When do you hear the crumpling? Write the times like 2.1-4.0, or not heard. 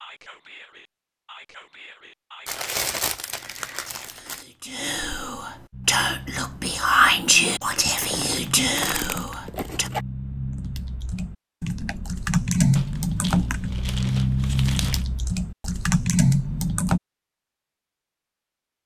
2.5-4.5, 8.0-10.1, 12.8-15.1.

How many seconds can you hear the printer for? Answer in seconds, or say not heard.
not heard.